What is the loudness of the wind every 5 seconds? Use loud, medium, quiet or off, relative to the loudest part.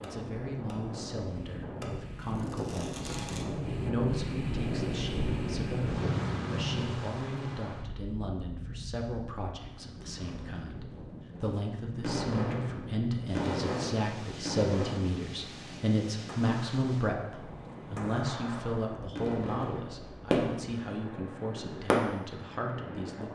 loud, loud, medium, medium, medium.